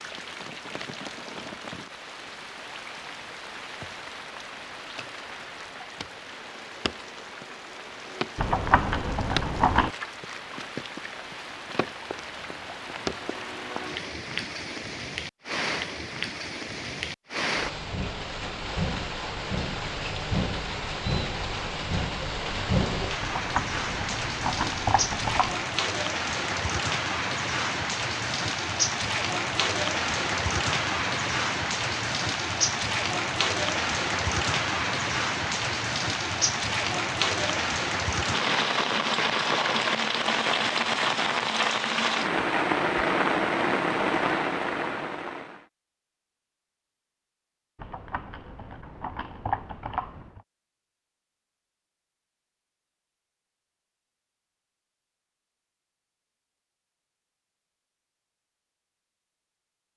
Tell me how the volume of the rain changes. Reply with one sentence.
The loudness of the rain goes up.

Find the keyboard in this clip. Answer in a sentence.
You can hear the keyboard from 8.3 to 9.9 s, from 23.2 to 25.6 s and from 47.8 to 50.4 s.